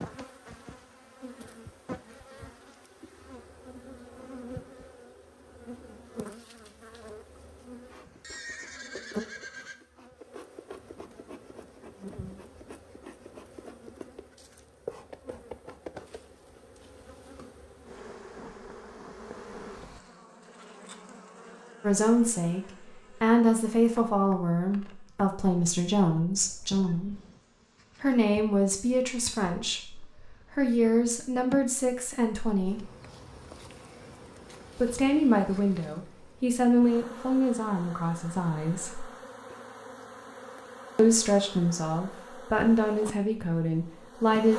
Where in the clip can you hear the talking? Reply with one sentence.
The talking can be heard from 21.8 to 22.6 s, from 23.2 to 27.1 s, from 28.0 to 32.9 s, from 34.8 to 39.0 s and from 41.0 to 44.5 s.